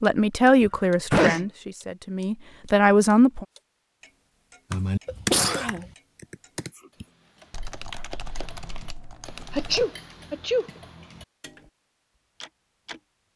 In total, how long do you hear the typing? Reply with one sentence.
You can hear the typing for 5 seconds altogether.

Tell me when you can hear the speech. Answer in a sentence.
You can hear the speech from 0.0 to 3.5 s.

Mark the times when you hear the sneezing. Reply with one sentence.
You can hear the sneezing from 0.7 to 1.4 s, from 5.0 to 5.9 s and from 9.5 to 10.7 s.